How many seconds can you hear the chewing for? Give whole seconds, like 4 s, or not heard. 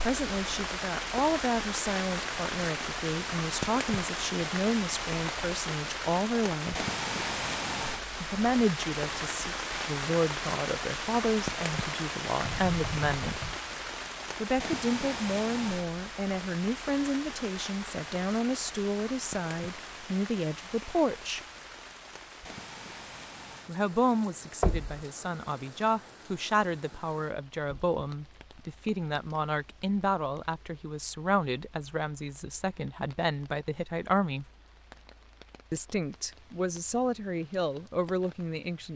not heard.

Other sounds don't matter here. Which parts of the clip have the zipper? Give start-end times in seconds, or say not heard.
not heard.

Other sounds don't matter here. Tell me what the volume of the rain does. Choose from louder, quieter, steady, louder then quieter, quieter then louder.
quieter.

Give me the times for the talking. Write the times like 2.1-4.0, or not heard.
0.0-6.8, 8.2-13.4, 14.4-21.4, 23.6-34.5, 35.7-38.9.